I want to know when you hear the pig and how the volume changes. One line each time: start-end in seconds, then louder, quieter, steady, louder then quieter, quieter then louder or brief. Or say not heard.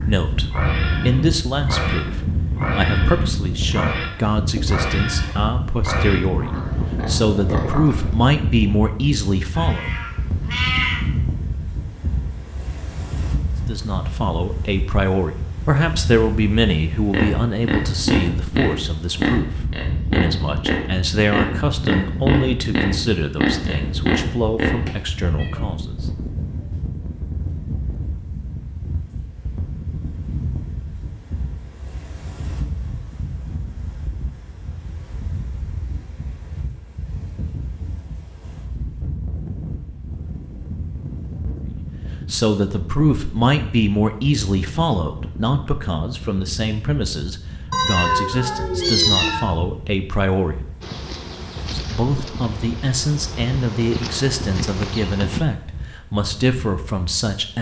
0.0-8.2 steady
17.1-24.8 steady.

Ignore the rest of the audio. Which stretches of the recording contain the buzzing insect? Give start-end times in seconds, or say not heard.
50.8-55.5.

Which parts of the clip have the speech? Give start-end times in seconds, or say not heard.
0.1-9.9, 13.7-25.9, 42.2-50.6, 51.7-57.5.